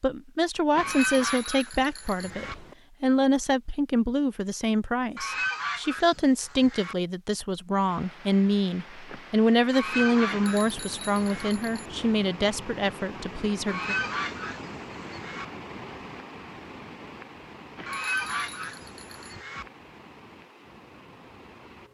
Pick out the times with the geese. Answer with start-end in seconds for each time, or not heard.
0.8-2.5, 5.2-7.0, 9.7-11.5, 13.7-15.4, 17.9-19.6.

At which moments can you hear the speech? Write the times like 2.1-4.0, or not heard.
0.0-13.9.